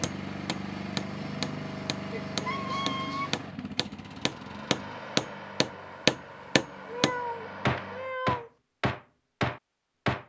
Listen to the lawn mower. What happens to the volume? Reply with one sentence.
The volume of the lawn mower goes down.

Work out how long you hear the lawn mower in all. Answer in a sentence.
The lawn mower can be heard for 8 seconds in total.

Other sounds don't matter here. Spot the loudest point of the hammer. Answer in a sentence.
The volume of the hammer peaks at 6 seconds.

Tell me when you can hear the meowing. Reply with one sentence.
You can hear the meowing from 2.5 to 3.4 s and from 6.8 to 8.5 s.